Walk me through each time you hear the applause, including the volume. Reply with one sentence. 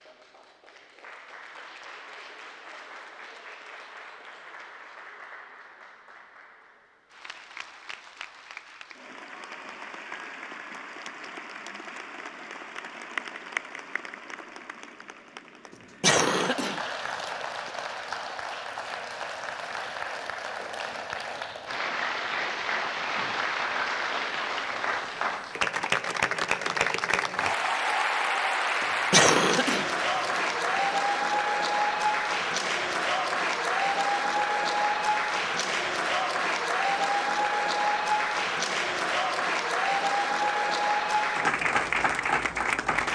You can hear the applause from 0.0 to 43.1 s, getting louder.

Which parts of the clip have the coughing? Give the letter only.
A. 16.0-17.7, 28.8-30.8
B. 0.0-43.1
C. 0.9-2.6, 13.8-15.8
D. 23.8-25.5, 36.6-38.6
A.